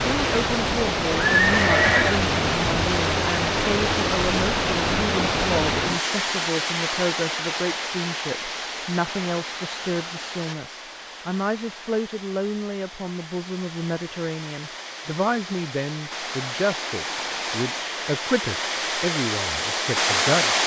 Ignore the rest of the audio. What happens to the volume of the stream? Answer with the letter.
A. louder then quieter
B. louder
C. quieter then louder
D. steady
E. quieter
C.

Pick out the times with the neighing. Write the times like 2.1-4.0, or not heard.
1.3-2.2.